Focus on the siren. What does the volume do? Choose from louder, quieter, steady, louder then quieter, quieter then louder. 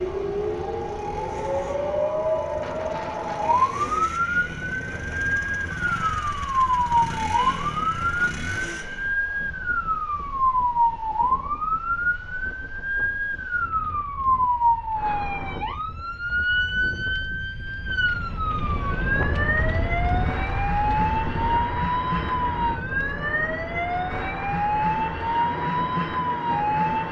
steady.